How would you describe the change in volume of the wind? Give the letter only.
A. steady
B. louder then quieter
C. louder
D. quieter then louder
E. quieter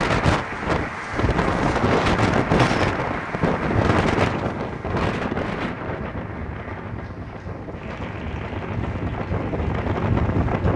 D.